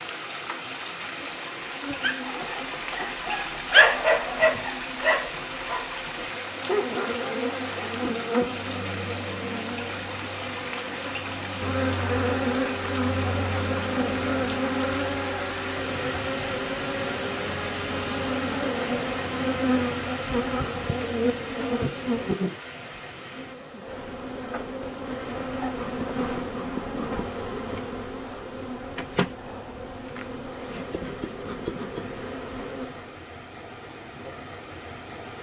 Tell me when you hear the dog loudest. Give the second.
4 s.